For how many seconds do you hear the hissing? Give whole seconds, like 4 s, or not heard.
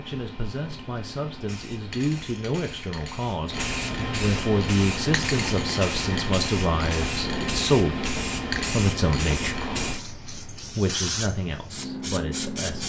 13 s.